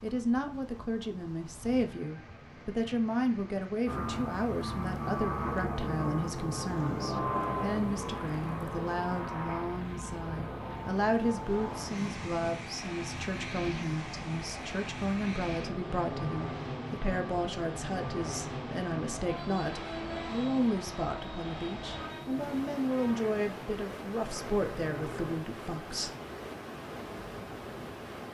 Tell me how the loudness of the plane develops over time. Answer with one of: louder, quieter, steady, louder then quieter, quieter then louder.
quieter.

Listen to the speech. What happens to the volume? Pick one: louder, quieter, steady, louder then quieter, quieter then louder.
steady.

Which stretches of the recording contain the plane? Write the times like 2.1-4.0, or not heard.
3.9-25.4.